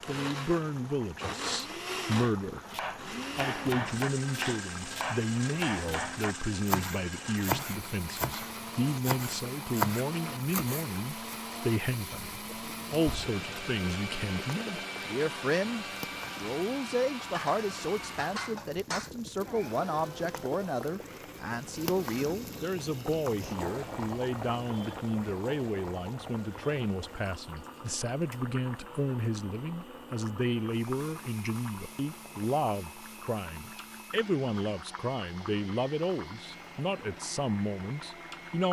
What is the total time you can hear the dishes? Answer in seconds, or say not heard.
2 s.